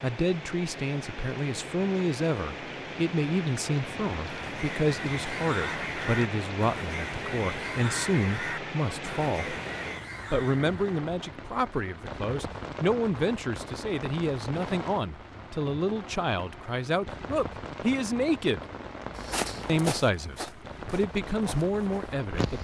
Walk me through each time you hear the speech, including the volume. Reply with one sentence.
The speech can be heard from 0.0 to 9.6 s, at a steady volume; from 10.3 to 18.6 s, at a steady volume; and briefly from 19.6 to 22.5 s.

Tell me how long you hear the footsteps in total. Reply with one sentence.
You can hear the footsteps for 3 seconds altogether.